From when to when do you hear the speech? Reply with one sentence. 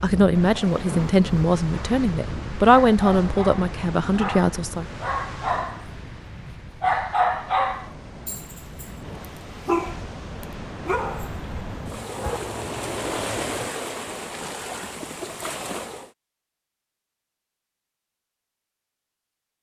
You can hear the speech from 0.0 to 4.8 s.